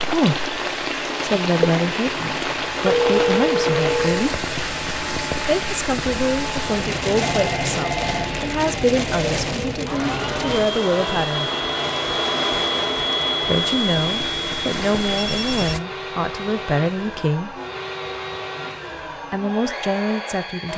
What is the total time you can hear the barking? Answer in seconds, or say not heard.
not heard.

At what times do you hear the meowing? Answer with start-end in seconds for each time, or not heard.
not heard.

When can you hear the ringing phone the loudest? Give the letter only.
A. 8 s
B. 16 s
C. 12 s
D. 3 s
D.